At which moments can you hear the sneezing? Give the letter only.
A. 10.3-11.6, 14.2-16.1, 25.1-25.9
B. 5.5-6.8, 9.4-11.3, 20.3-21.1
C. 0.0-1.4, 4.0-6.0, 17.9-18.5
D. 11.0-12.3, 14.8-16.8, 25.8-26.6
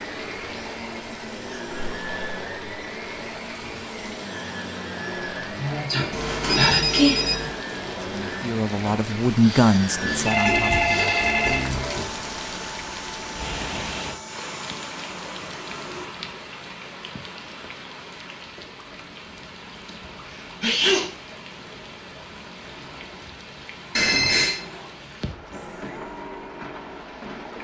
B.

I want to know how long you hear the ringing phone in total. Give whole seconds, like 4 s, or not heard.
4 s.